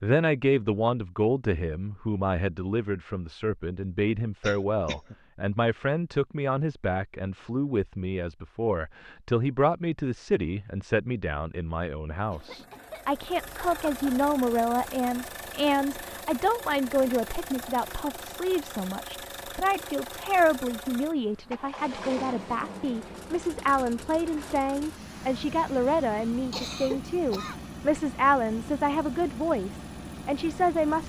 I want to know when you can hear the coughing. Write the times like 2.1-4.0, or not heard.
4.4-5.2, 12.3-14.0, 26.5-27.6.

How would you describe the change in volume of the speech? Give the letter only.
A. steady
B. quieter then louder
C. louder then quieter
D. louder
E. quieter
A.